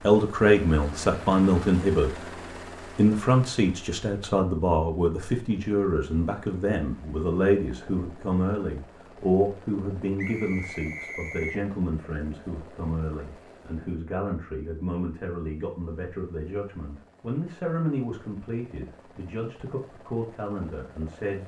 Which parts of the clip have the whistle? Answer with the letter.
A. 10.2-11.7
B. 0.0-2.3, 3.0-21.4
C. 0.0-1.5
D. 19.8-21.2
A.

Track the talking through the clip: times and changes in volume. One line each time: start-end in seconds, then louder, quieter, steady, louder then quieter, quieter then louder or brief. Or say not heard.
0.0-2.3 brief
3.0-21.4 quieter.